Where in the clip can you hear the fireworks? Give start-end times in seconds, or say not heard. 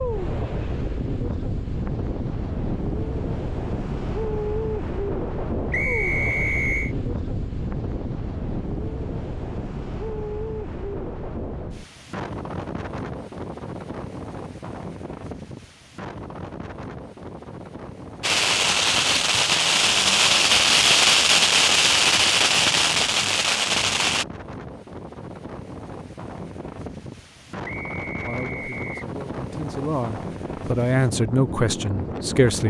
18.2-24.2.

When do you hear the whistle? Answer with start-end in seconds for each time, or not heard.
5.7-7.0, 27.6-29.1.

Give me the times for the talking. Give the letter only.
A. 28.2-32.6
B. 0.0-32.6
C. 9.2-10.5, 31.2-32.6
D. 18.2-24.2
A.